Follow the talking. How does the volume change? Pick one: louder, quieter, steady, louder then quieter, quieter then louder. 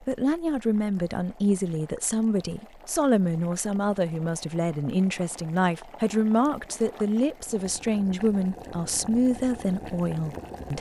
steady.